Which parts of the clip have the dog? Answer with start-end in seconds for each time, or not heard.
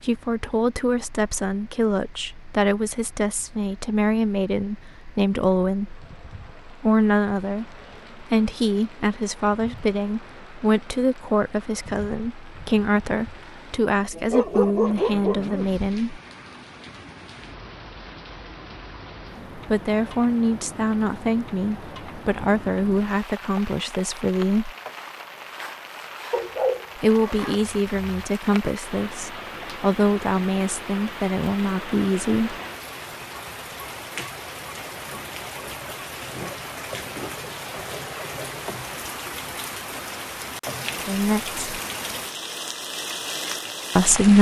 14.3-15.8, 26.3-28.2.